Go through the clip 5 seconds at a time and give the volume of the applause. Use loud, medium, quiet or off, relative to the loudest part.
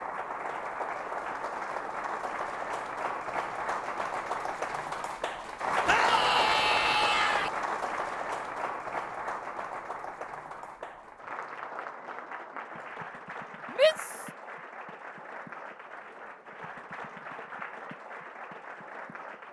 loud, loud, medium, medium.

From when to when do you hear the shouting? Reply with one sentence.
The shouting can be heard from 5.8 to 7.5 s and from 13.7 to 14.2 s.